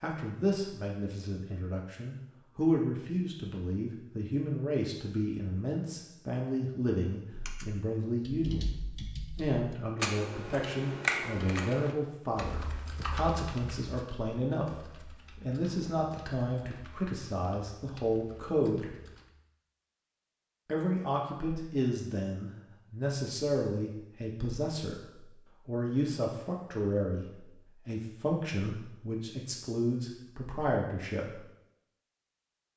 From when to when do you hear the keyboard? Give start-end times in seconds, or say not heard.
7.3-19.3.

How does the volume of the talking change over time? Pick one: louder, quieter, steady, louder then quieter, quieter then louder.
steady.